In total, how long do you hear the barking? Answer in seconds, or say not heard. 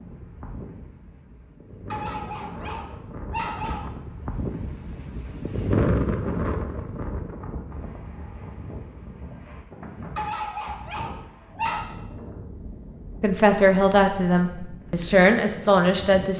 4 s.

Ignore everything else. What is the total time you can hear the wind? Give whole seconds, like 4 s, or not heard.
16 s.